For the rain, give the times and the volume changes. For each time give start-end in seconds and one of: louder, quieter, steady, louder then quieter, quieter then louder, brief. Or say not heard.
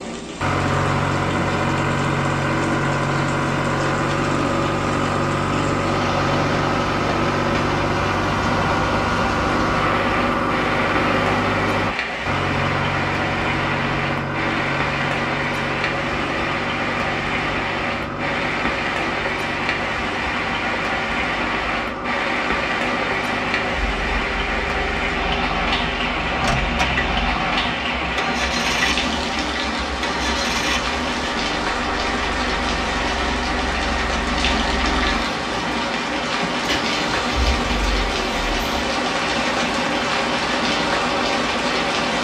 0.0-42.1 louder.